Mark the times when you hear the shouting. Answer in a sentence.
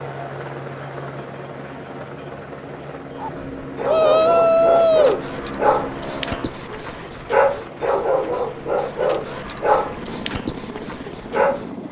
The shouting can be heard from 3.9 to 5.2 s.